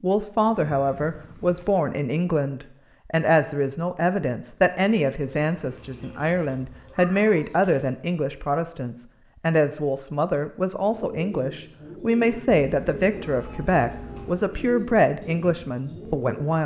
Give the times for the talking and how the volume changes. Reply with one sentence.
The talking can be heard from 0.0 to 16.6 s, at a steady volume.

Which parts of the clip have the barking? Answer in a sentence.
You can't hear the barking here.